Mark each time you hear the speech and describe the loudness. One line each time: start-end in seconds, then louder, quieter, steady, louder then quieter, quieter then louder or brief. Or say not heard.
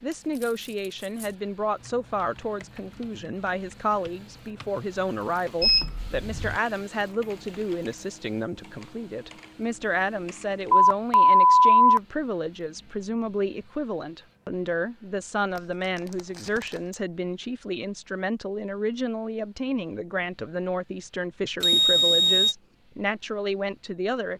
0.0-24.3 steady.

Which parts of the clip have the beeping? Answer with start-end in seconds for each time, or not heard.
5.6-6.5, 10.7-12.0, 21.6-22.6.